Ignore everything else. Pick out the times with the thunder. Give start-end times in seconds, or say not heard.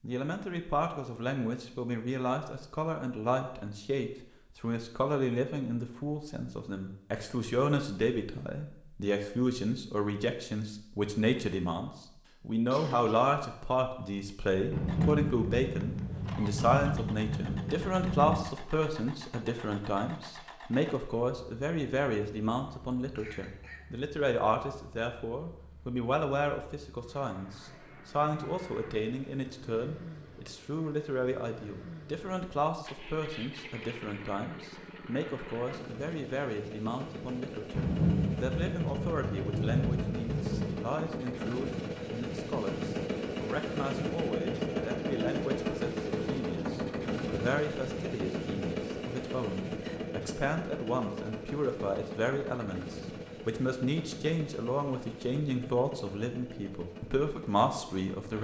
14.7-18.4, 37.7-40.9.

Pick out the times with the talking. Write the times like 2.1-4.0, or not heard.
0.0-58.3.